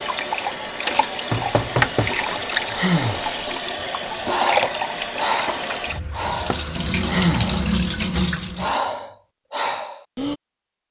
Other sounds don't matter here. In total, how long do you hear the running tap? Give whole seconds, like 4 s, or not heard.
9 s.